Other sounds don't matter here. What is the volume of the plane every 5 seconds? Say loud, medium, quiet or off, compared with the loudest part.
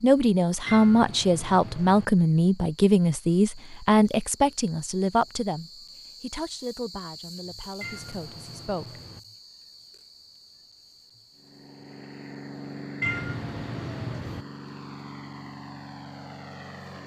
off, off, loud, loud.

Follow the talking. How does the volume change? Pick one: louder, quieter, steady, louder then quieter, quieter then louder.
quieter.